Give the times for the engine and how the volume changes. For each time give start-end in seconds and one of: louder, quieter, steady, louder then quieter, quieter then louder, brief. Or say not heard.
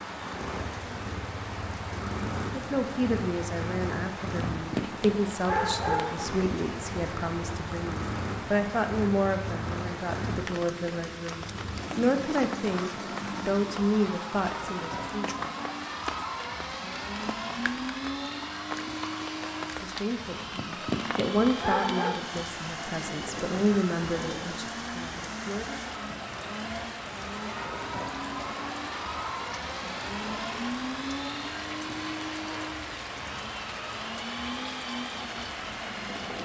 0.0-36.3 steady.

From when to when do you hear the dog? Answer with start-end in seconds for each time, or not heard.
4.5-6.3, 20.6-22.2.